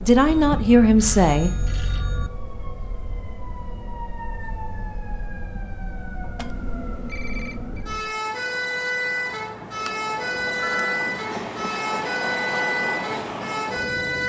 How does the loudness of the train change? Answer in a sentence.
The loudness of the train goes up.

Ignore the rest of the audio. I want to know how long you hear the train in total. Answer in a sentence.
The train can be heard for 7 seconds in total.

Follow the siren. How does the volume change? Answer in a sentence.
The volume of the siren goes up.